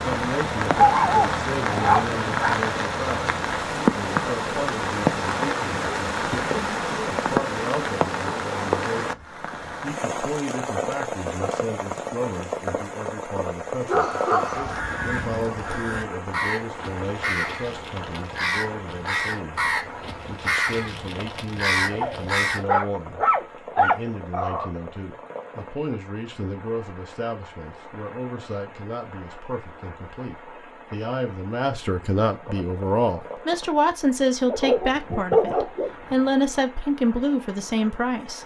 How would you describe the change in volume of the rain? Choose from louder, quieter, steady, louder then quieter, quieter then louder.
quieter.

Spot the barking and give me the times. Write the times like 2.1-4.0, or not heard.
0.8-2.6, 13.8-14.8, 22.0-24.7, 34.5-36.1.